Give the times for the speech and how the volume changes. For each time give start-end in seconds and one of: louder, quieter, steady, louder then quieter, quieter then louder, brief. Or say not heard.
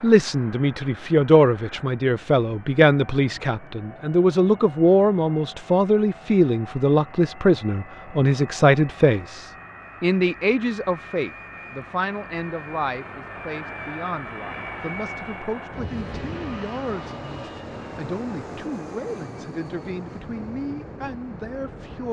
0.0-22.0 quieter.